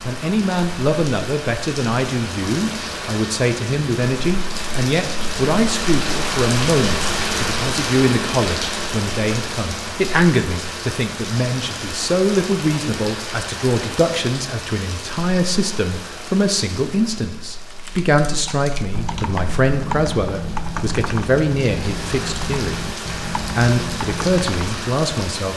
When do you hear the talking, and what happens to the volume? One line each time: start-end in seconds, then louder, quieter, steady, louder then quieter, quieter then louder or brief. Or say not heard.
0.0-25.5 steady.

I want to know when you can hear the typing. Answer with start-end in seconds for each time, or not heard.
17.7-24.9.